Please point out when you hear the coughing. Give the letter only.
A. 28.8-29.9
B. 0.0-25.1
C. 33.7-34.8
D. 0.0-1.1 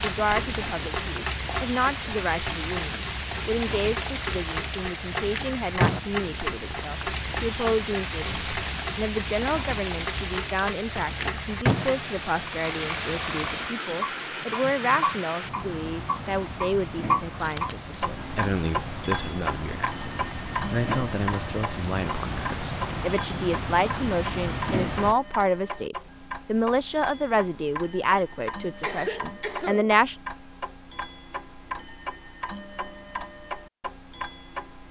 A.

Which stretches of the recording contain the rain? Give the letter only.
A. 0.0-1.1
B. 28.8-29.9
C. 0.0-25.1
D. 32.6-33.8
C.